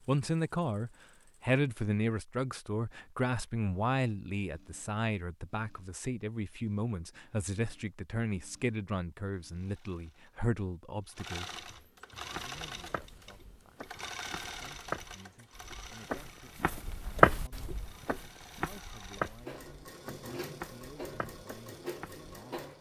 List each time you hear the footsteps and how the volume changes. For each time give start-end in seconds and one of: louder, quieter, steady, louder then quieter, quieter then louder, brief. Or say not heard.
12.3-22.3 louder then quieter.